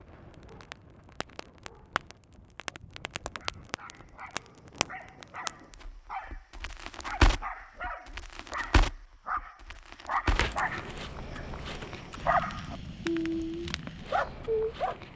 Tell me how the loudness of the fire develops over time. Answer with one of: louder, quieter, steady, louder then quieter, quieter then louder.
louder then quieter.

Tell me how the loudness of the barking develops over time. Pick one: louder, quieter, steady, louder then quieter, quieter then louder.
louder.